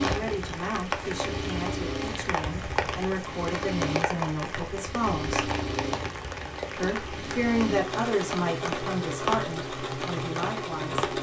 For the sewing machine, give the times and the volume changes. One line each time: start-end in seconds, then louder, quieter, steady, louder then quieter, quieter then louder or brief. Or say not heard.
0.0-11.1 steady.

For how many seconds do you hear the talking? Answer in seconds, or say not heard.
10 s.